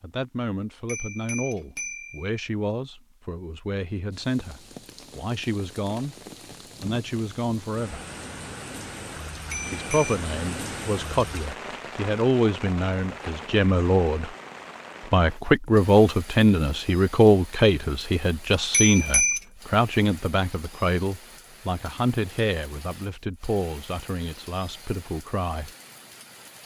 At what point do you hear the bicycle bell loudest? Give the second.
19 s.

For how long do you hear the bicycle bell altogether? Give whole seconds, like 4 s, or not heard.
3 s.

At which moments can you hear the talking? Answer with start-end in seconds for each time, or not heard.
0.0-6.2, 6.8-8.1, 9.7-14.3, 15.1-25.7.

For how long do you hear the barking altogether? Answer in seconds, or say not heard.
not heard.